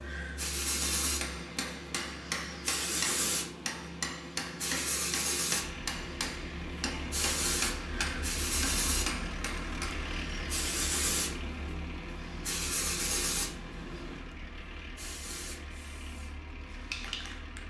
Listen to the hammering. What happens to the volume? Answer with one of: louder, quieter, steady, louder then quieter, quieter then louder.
steady.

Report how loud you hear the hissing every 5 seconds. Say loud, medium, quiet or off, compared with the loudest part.
loud, loud, loud, medium.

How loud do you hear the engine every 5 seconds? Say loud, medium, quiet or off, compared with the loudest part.
off, loud, loud, medium.